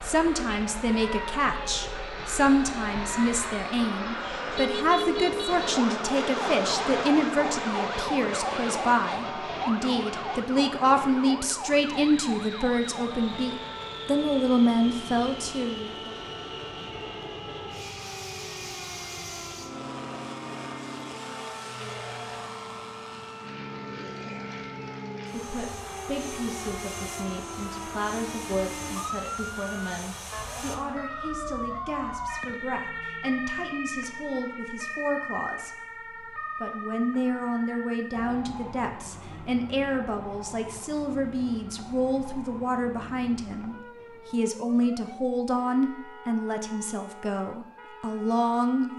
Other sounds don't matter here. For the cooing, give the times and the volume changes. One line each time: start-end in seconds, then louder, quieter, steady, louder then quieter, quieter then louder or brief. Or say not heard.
not heard.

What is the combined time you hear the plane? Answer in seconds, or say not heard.
31 s.